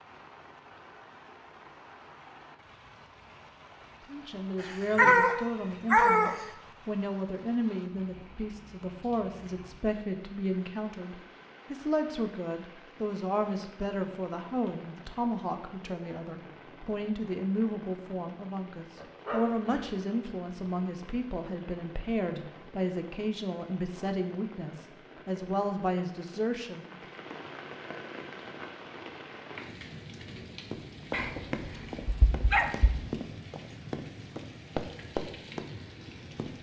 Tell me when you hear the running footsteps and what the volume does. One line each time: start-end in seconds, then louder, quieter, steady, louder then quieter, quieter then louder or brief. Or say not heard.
30.7-36.5 quieter then louder.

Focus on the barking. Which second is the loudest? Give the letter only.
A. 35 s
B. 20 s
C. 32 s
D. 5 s
D.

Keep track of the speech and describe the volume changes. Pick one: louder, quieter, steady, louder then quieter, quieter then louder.
steady.